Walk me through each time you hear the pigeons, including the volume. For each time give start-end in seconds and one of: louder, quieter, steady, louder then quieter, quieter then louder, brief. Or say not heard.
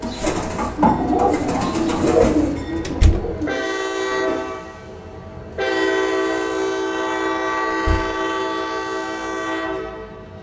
0.0-4.3 quieter.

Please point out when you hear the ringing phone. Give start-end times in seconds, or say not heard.
not heard.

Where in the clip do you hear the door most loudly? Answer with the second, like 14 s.
3 s.